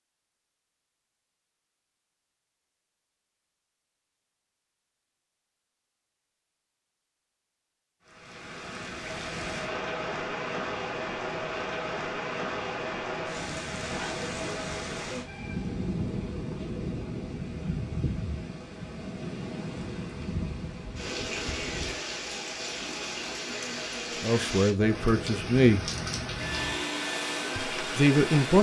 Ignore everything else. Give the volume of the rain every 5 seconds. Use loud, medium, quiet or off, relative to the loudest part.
off, loud, loud, loud, loud, loud.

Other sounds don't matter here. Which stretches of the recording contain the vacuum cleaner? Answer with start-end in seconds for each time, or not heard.
26.3-28.4.